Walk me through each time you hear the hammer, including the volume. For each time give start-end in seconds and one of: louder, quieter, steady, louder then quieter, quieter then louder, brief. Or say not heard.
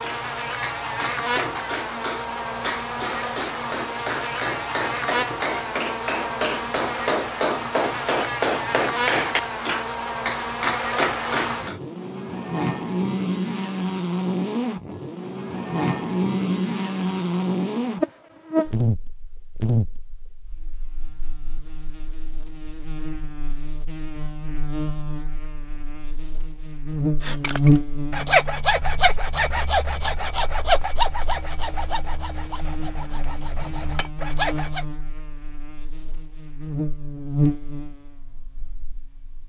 0.0-11.8 louder.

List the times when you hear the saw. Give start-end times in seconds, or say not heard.
27.2-34.9.